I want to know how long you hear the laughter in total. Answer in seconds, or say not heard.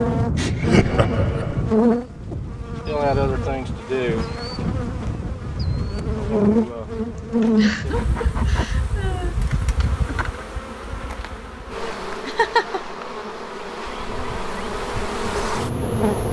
4 s.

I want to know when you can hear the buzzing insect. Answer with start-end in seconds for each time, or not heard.
0.0-16.2.